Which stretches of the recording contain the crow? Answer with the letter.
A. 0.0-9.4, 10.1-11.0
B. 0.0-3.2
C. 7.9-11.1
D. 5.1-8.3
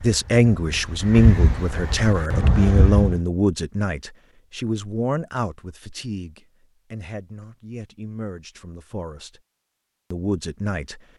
B.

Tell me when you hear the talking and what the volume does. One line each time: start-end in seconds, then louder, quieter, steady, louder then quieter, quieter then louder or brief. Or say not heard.
0.0-9.4 quieter
10.1-11.0 brief.